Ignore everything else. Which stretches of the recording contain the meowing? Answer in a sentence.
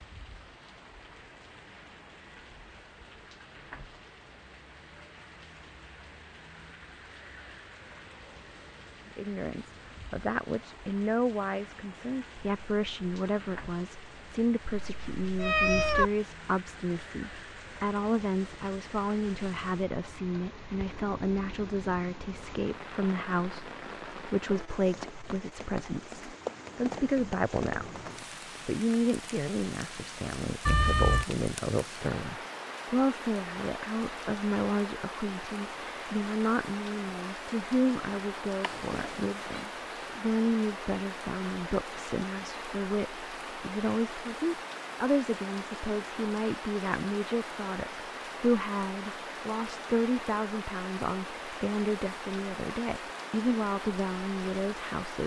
The meowing can be heard from 14.7 to 16.1 s, from 30.6 to 31.2 s and from 38.6 to 39.6 s.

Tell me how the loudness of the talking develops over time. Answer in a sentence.
The loudness of the talking stays about the same.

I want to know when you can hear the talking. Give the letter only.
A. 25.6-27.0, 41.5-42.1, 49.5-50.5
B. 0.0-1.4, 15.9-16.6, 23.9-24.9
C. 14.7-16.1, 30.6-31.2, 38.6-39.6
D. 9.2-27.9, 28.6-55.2
D.